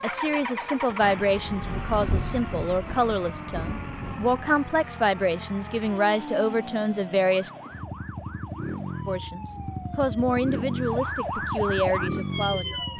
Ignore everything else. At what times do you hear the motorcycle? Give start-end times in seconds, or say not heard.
0.0-12.9.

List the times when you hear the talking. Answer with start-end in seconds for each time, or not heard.
0.0-7.5, 9.1-12.9.